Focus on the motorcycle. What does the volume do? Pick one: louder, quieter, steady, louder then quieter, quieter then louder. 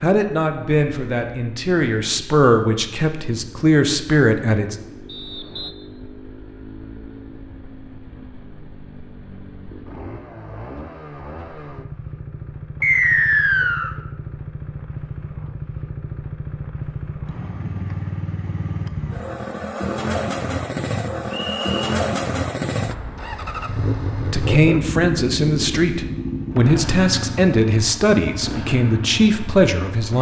louder.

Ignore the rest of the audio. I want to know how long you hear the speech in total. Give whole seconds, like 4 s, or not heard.
11 s.